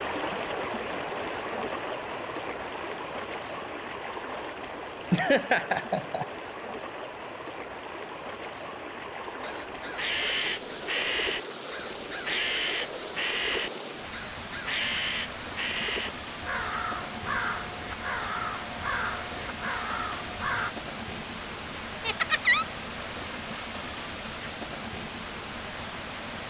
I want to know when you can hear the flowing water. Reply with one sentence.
The flowing water can be heard from 0.0 to 26.4 s.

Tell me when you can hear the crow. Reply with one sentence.
The crow can be heard from 9.4 to 20.8 s.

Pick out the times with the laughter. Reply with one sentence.
The laughter can be heard from 5.1 to 6.2 s and from 22.0 to 22.6 s.